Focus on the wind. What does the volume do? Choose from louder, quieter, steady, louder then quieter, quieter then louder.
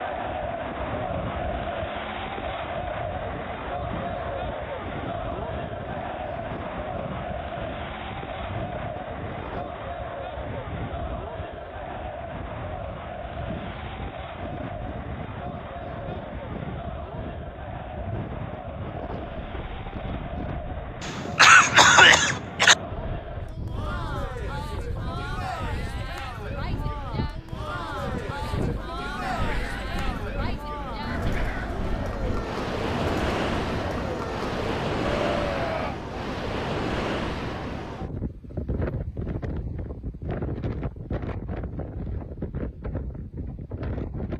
louder.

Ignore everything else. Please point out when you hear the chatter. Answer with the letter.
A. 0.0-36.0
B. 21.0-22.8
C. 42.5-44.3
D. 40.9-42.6
A.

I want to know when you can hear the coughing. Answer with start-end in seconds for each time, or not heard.
21.0-22.8.